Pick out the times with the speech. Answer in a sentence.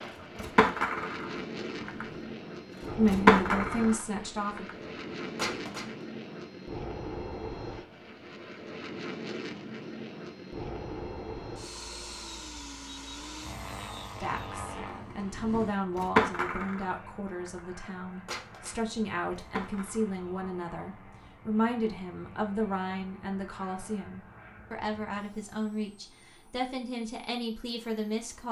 The speech can be heard from 3.0 to 4.7 s and from 14.2 to 28.4 s.